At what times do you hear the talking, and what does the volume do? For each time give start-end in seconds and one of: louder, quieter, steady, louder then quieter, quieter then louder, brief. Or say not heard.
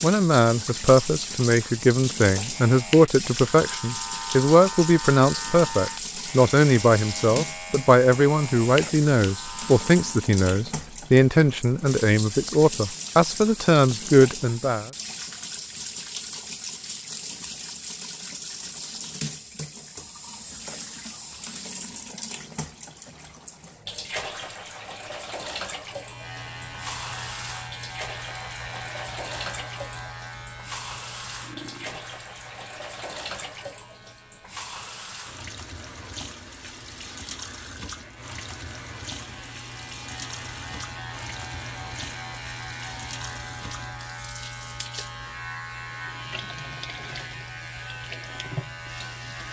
0.0-14.9 steady.